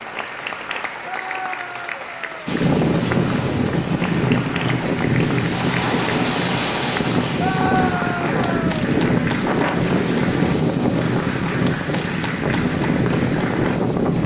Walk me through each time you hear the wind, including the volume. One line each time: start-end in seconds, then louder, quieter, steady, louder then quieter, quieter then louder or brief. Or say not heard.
2.5-14.2 steady.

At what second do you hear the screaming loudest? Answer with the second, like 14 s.
8 s.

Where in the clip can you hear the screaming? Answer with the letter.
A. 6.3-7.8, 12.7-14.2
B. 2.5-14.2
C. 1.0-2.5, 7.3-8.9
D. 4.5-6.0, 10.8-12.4
C.